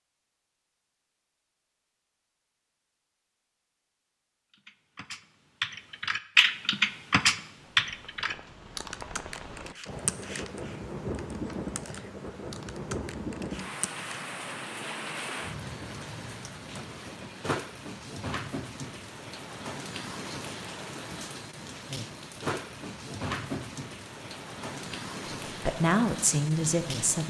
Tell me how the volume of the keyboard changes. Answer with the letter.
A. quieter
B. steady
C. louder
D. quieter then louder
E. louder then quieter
A.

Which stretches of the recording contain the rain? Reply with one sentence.
The rain can be heard from 7.5 to 27.2 s.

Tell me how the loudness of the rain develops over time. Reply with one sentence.
The volume of the rain stays about the same.